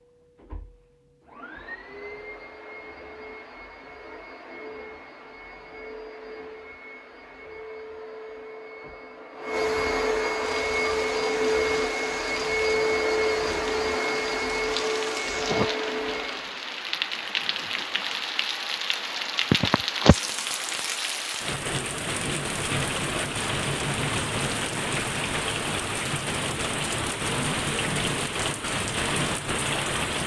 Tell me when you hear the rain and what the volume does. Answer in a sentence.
You can hear the rain from 10.4 to 30.2 s, getting louder.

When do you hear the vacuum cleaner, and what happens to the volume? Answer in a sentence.
You can hear the vacuum cleaner from 0.0 to 16.6 s, getting louder.